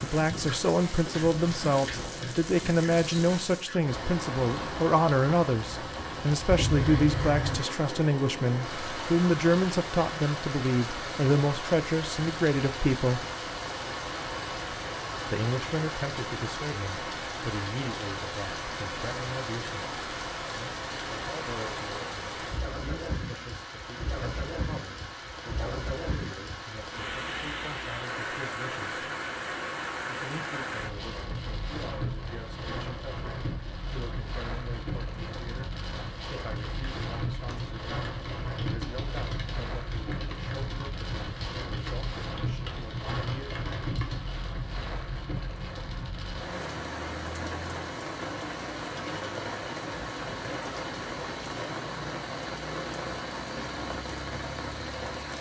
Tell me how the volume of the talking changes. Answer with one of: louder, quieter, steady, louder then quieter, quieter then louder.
quieter.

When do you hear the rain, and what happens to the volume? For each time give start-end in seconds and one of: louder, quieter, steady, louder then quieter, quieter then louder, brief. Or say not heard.
0.0-55.3 steady.